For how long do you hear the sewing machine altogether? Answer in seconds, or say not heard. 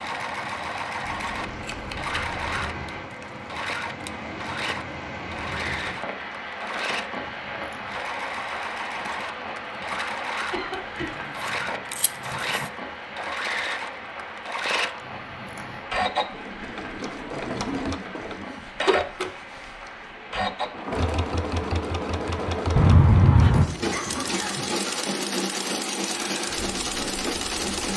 28 s.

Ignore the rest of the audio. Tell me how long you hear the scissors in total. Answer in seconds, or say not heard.
3 s.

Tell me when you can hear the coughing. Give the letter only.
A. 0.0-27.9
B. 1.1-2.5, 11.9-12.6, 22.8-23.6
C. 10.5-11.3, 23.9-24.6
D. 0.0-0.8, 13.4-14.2
C.